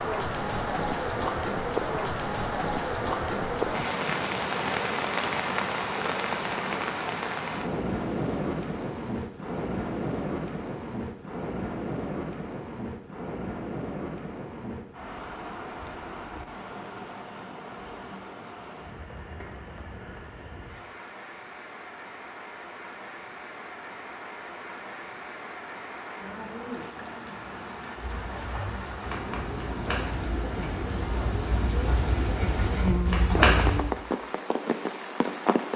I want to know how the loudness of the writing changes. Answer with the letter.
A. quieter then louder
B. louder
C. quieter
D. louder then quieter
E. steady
B.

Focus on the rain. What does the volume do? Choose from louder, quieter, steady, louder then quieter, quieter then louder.
quieter then louder.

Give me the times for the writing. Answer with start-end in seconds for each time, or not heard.
28.1-33.8.